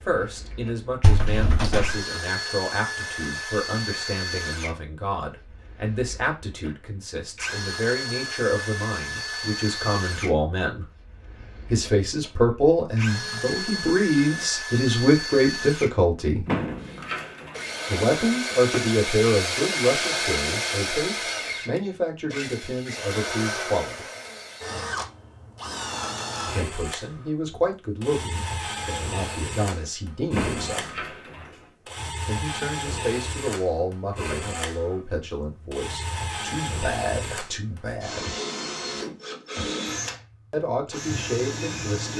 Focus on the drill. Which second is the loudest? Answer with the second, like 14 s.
20 s.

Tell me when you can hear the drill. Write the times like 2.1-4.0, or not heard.
0.0-42.1.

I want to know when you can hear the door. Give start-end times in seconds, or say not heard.
1.0-2.0, 16.4-18.9, 30.3-31.7.